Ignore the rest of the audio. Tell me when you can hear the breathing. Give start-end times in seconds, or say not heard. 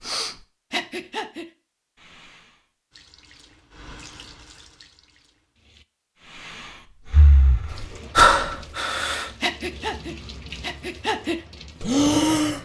0.0-2.5, 6.3-12.6.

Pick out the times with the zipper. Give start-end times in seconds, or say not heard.
not heard.